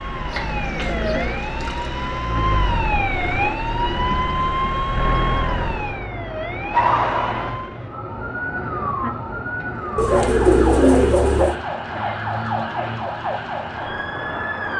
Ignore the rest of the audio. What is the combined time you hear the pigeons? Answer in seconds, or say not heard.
3 s.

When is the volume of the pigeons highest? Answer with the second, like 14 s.
11 s.